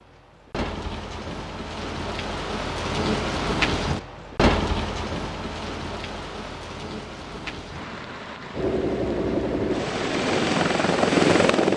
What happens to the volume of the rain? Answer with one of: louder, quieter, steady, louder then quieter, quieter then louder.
louder then quieter.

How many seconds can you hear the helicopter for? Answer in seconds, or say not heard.
3 s.